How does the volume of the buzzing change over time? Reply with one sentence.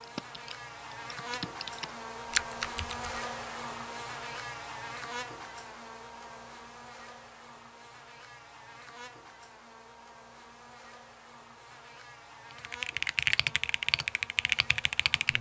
The volume of the buzzing goes down.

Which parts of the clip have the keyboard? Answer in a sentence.
The keyboard can be heard from 0.0 to 3.1 s and from 12.6 to 15.3 s.